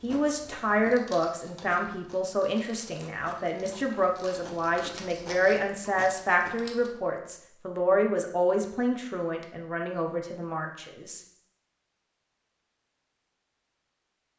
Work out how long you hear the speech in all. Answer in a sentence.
The speech can be heard for 11 seconds in total.